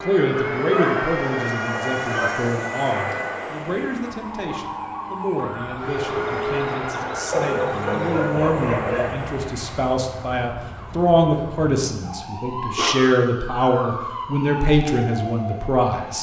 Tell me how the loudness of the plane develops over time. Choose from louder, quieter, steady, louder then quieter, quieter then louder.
quieter.